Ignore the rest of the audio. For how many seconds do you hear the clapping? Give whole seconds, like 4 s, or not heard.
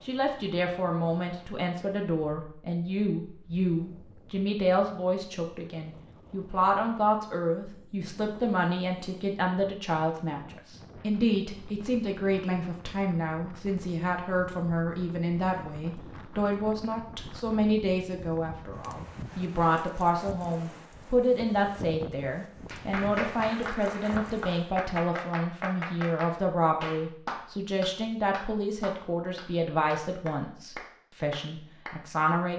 9 s.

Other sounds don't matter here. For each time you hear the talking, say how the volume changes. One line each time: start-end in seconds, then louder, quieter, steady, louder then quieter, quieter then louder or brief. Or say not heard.
0.0-32.5 steady.